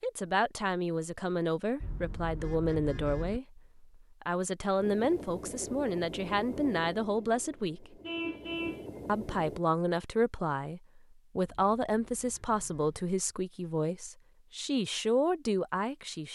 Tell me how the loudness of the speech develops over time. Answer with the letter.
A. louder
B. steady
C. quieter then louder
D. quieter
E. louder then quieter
B.